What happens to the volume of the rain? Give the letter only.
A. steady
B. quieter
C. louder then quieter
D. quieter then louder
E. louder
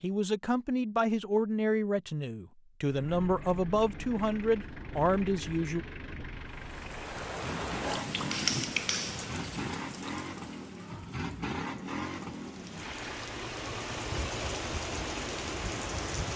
D.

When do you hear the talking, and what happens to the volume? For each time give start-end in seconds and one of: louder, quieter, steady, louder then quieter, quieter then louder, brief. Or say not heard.
0.0-5.8 steady.